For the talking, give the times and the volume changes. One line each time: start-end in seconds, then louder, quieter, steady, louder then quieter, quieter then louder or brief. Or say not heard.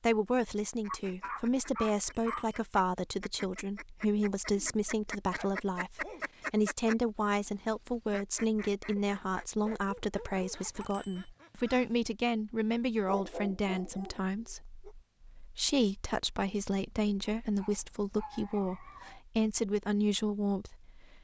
0.0-21.1 steady.